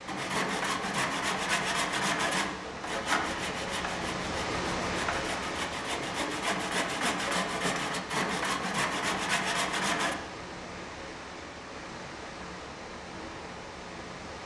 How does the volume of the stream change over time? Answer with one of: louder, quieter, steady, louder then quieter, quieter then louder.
louder then quieter.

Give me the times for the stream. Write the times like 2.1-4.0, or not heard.
0.0-14.4.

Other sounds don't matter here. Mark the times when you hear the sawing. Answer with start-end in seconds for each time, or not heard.
0.1-10.2.